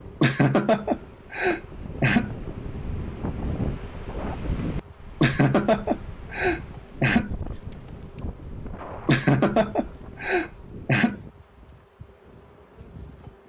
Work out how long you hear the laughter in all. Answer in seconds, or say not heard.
6 s.